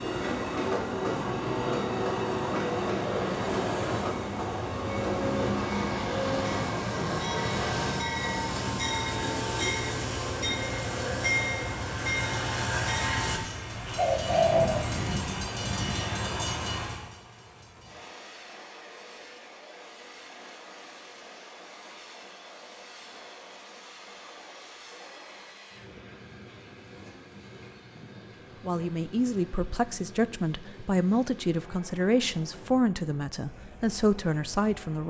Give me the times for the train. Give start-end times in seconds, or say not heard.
0.0-35.0.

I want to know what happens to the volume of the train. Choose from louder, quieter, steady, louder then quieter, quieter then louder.
quieter.